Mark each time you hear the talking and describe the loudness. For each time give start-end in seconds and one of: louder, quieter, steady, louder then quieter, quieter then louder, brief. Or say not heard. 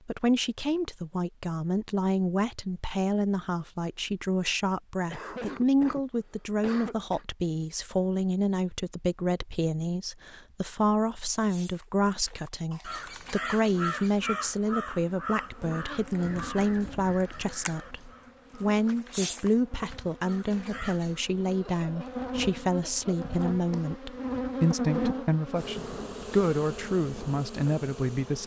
0.1-28.4 steady.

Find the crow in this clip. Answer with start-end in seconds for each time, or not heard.
11.3-21.2.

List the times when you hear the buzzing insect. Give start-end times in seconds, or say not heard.
13.2-28.4.